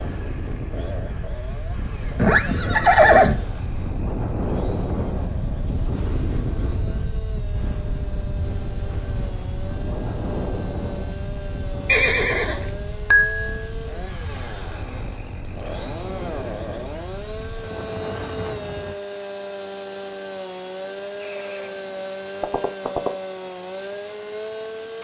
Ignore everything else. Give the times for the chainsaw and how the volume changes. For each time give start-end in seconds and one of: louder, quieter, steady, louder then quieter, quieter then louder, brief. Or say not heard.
0.0-24.9 louder.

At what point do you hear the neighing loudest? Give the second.
3 s.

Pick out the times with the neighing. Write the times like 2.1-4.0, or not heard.
2.1-3.4, 11.8-13.4, 21.2-21.8, 22.4-23.1.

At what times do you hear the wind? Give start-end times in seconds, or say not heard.
0.0-18.9.